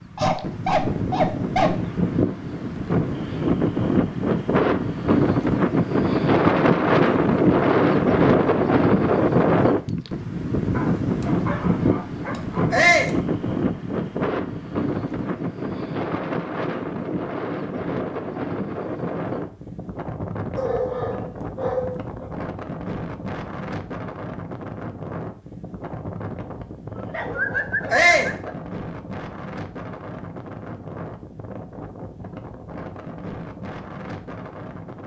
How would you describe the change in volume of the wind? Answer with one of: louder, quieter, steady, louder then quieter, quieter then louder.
quieter.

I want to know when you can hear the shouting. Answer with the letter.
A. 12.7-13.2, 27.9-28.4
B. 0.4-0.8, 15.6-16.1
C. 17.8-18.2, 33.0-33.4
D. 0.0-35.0
A.